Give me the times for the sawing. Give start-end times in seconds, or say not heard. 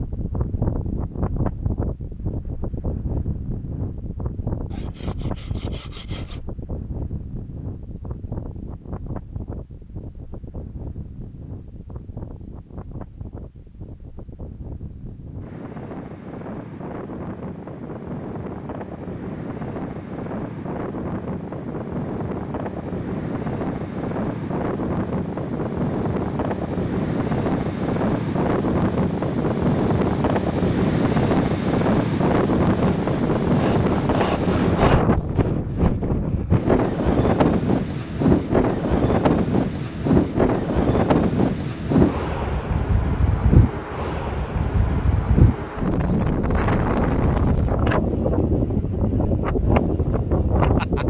4.7-6.4, 32.8-35.0.